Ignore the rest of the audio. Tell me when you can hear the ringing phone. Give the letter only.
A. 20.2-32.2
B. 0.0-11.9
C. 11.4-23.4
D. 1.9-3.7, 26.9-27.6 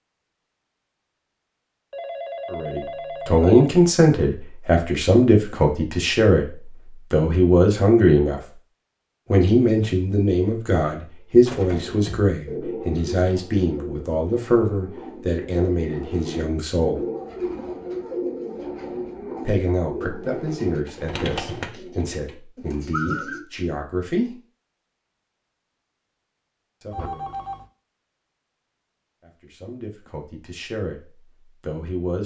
D.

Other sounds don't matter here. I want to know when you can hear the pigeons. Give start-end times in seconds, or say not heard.
11.4-23.4.